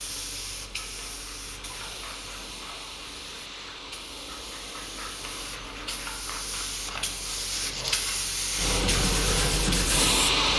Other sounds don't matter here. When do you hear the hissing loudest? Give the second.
8 s.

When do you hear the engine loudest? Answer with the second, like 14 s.
10 s.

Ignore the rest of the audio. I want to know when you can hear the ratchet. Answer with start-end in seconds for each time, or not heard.
not heard.